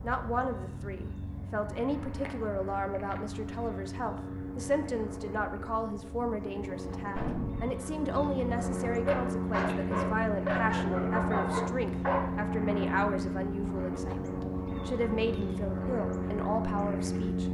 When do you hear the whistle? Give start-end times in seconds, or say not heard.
not heard.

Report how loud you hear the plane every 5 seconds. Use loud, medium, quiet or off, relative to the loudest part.
medium, loud, loud, loud.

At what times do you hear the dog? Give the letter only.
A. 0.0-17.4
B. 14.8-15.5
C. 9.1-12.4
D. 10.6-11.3
C.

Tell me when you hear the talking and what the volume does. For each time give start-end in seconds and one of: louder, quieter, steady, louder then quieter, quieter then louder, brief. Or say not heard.
0.0-17.4 steady.